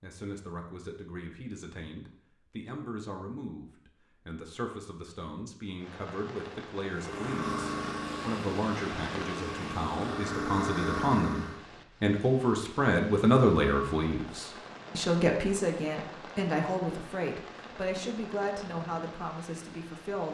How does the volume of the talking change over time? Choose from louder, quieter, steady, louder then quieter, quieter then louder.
louder then quieter.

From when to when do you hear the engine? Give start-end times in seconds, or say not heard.
6.9-11.6.